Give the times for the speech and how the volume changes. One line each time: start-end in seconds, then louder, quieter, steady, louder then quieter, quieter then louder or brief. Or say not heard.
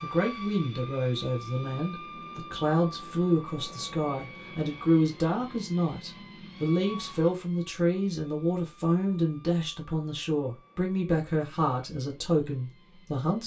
0.0-13.4 steady.